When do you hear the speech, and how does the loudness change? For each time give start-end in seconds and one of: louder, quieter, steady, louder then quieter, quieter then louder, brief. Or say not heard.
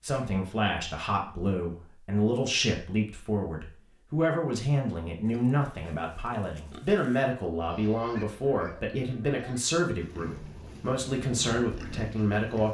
0.0-12.6 steady.